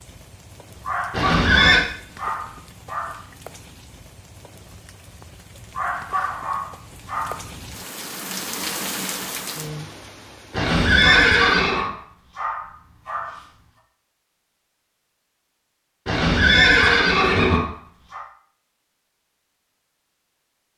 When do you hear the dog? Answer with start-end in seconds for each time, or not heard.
0.7-3.2, 5.6-7.5, 11.1-13.4, 16.8-18.2.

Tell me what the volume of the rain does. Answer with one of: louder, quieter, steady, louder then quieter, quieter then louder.
louder.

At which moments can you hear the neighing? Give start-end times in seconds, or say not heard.
1.1-1.9, 10.5-11.9, 16.1-17.6.